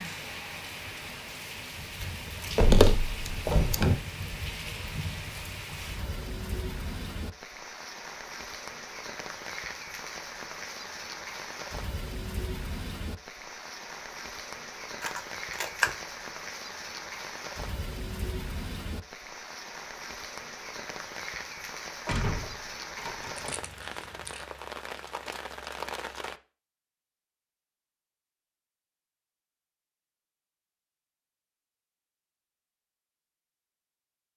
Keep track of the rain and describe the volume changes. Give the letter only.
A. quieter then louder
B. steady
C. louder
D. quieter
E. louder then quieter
B.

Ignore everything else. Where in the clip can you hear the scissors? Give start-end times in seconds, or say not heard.
2.0-3.8, 15.0-15.9, 23.4-24.4.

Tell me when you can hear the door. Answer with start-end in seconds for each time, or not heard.
2.5-4.0, 22.1-23.4.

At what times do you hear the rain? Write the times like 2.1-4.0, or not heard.
0.0-26.4.